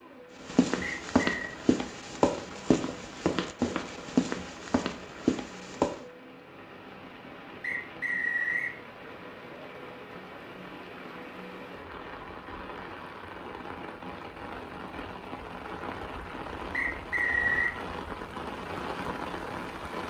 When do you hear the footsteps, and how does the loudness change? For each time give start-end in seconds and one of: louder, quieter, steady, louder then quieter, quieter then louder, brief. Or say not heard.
0.4-6.0 steady.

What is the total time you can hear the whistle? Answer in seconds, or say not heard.
3 s.